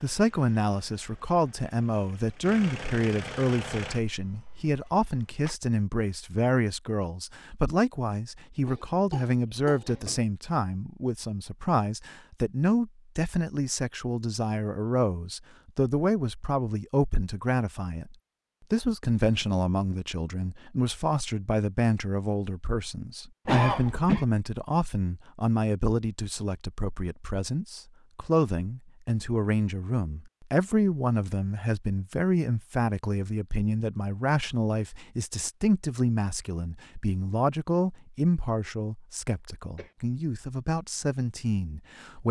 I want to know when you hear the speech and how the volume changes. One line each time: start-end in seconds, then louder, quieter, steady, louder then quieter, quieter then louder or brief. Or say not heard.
0.0-42.2 steady.